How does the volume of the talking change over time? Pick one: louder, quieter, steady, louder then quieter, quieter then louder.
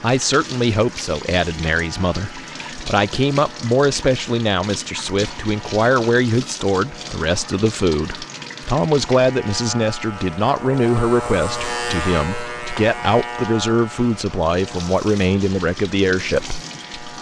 steady.